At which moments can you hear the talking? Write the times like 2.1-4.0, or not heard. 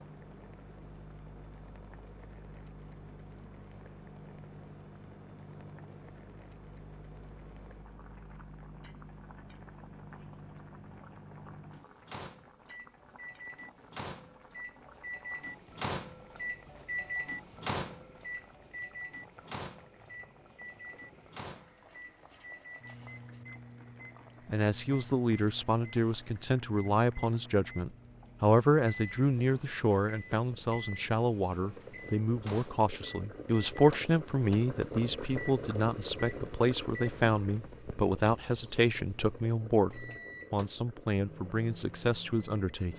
24.4-42.9.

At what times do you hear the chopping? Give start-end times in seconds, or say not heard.
not heard.